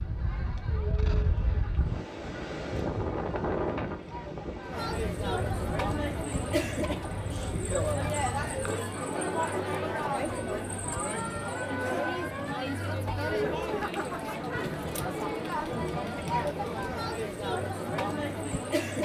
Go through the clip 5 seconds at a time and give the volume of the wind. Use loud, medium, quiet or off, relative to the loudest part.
loud, medium, off, off.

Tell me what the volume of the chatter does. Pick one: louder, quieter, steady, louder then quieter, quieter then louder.
louder.